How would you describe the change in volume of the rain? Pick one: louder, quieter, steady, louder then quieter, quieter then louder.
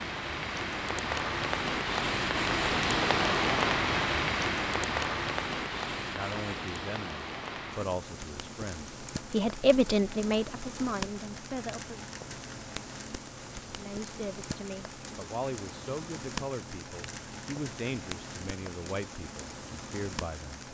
quieter.